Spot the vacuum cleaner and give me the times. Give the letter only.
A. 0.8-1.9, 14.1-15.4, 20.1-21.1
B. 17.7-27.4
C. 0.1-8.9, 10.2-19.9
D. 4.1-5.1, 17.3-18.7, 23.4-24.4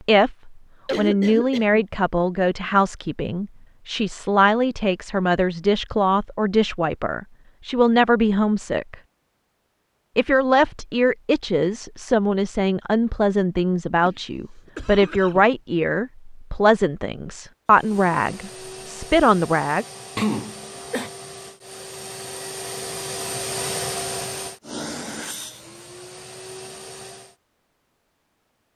B.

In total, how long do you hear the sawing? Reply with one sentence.
The sawing can't be heard in this clip.